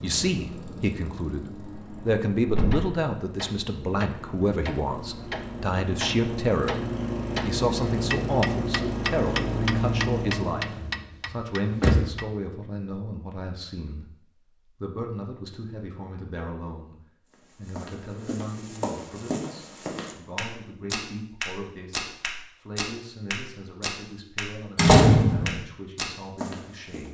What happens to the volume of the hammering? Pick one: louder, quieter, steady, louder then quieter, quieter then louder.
louder.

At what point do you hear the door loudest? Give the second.
25 s.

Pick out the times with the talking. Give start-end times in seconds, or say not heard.
0.0-6.8, 7.4-14.2, 14.8-16.9, 17.6-27.1.